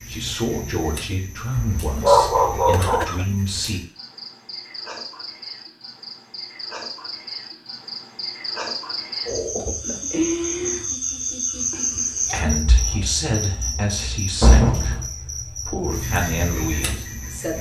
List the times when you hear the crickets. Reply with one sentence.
You can hear the crickets from 0.0 to 17.5 s.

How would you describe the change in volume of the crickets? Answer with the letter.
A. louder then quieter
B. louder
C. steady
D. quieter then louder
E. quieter
B.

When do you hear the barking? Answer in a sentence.
You can hear the barking from 1.6 to 3.1 s.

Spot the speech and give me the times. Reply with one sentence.
The speech can be heard from 0.0 to 3.8 s and from 12.1 to 17.5 s.